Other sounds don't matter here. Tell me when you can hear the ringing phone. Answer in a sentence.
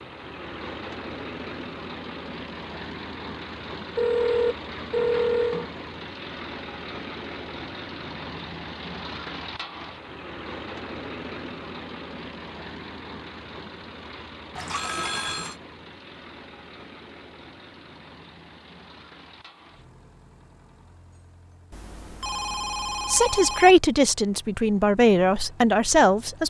You can hear the ringing phone from 4.0 to 5.7 s, from 14.6 to 15.6 s and from 21.7 to 23.8 s.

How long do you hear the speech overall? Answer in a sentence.
You can hear the speech for 3 seconds altogether.